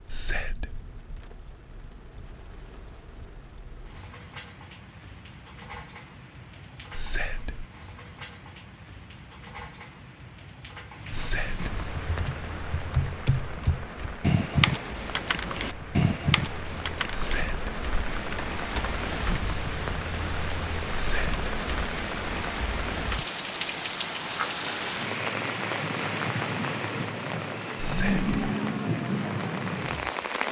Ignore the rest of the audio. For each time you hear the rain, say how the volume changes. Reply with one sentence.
The rain can be heard from 0.0 to 30.4 s, getting louder.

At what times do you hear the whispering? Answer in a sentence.
The whispering can be heard from 0.1 to 0.8 s, from 6.9 to 7.7 s, from 11.1 to 11.7 s, from 17.1 to 17.9 s, from 20.9 to 21.4 s and from 27.8 to 28.3 s.